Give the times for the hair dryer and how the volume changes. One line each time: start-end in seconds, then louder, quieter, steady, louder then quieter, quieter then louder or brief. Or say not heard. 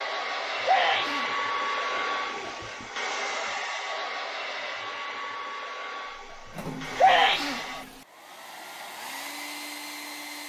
0.0-10.4 quieter.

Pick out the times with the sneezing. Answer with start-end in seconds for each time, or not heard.
0.6-1.3, 7.0-7.6.